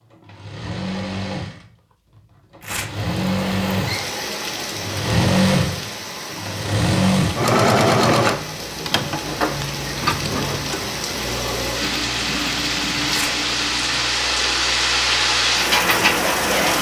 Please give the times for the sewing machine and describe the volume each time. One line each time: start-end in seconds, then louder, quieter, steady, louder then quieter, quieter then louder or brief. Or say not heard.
0.1-16.7 louder then quieter.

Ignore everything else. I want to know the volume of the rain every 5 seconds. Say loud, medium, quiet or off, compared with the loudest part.
medium, quiet, medium, loud.